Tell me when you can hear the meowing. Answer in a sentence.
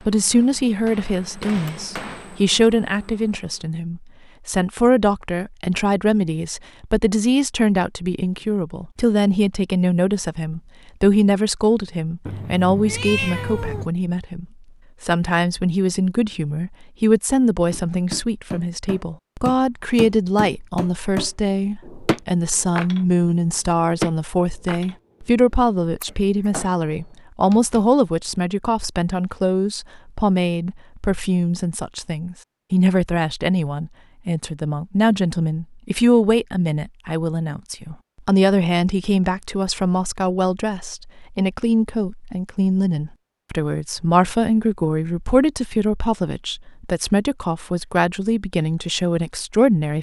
The meowing can be heard from 12.2 to 13.9 s and from 26.0 to 26.5 s.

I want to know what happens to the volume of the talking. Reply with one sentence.
The loudness of the talking stays about the same.